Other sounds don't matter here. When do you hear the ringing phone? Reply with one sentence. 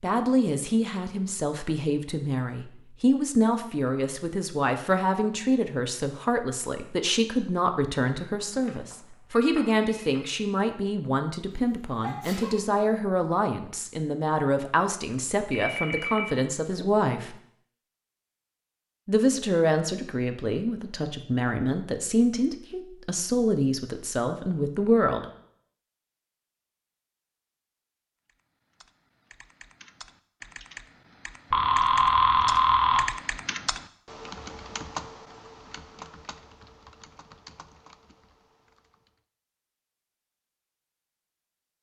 You can hear the ringing phone from 8.3 to 10.4 s, from 15.5 to 16.9 s and from 31.5 to 33.0 s.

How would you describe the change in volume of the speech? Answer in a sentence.
The loudness of the speech stays about the same.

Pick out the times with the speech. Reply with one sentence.
The speech can be heard from 0.0 to 17.4 s and from 19.1 to 25.2 s.